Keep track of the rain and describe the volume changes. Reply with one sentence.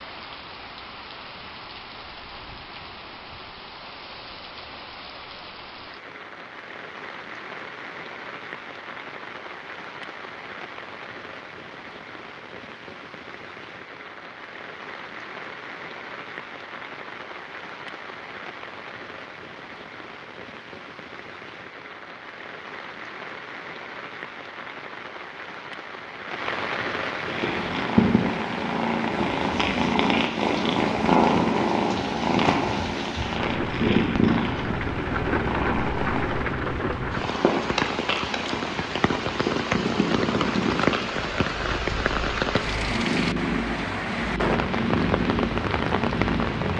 The loudness of the rain goes up.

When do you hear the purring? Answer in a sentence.
The purring can be heard from 27.2 to 46.7 s.